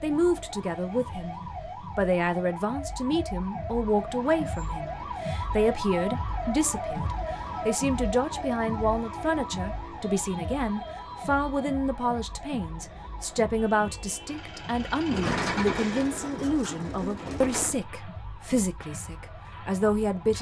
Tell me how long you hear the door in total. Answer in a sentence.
You can hear the door for 3 seconds altogether.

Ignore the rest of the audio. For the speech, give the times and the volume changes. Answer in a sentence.
You can hear the speech from 0.0 to 20.3 s, at a steady volume.